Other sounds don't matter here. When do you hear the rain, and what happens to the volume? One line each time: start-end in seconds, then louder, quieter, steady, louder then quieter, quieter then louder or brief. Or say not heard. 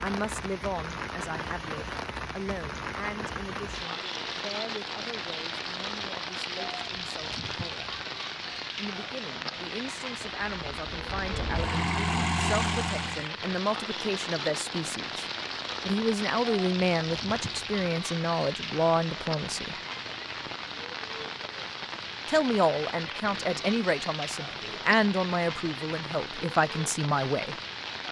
0.0-28.0 steady.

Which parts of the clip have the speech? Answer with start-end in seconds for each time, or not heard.
0.0-7.9, 8.8-15.2, 15.8-19.8, 22.2-27.6.